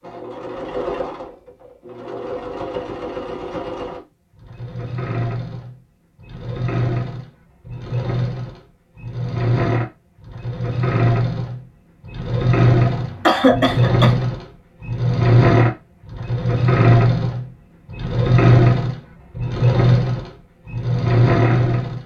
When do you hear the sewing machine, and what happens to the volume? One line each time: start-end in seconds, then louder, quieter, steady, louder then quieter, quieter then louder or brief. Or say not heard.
0.0-22.0 louder.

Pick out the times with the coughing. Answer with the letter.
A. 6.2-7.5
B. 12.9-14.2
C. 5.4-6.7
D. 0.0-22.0
B.